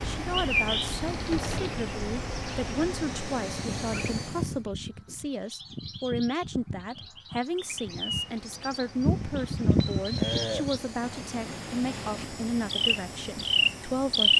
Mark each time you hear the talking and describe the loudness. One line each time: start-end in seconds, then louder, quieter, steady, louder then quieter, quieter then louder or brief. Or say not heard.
0.0-14.3 steady.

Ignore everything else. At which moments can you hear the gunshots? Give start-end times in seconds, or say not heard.
1.3-1.8.